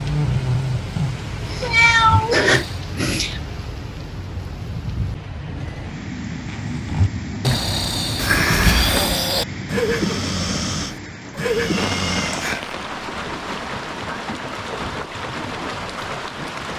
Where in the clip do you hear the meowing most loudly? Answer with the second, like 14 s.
2 s.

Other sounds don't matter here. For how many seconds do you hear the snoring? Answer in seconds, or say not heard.
9 s.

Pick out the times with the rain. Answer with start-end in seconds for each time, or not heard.
0.0-16.7.